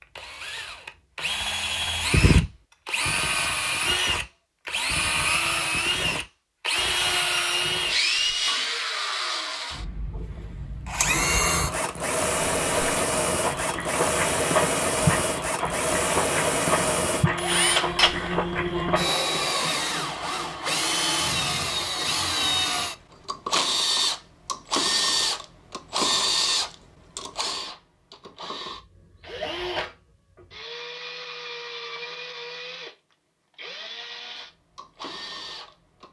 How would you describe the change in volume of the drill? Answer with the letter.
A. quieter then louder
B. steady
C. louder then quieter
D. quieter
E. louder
D.